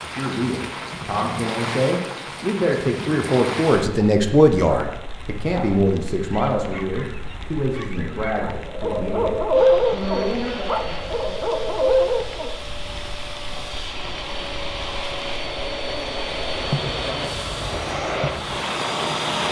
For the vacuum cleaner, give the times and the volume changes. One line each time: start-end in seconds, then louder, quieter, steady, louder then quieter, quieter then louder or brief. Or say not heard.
9.5-19.4 louder.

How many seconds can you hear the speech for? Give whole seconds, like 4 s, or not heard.
11 s.